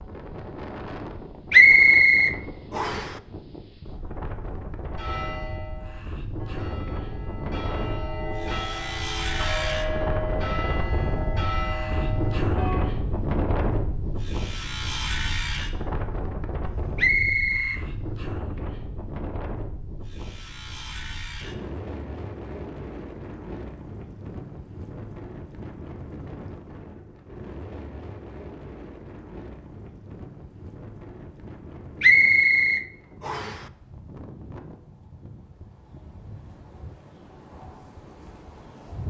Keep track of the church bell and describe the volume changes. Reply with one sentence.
The loudness of the church bell goes up.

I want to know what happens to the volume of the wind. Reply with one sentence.
The loudness of the wind goes up, then down.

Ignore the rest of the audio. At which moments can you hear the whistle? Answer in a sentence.
You can hear the whistle from 1.5 to 3.1 s, from 16.9 to 17.8 s and from 32.0 to 33.6 s.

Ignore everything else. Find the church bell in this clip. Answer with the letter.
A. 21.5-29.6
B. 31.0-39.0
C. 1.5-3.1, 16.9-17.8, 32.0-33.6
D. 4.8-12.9
D.